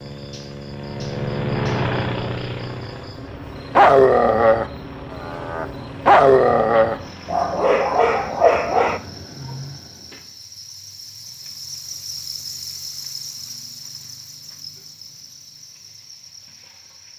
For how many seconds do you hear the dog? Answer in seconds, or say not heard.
6 s.